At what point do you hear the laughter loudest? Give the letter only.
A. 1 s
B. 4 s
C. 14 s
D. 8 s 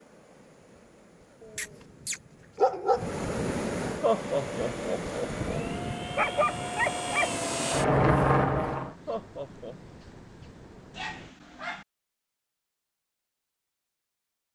B.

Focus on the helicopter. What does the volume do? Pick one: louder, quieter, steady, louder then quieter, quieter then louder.
louder.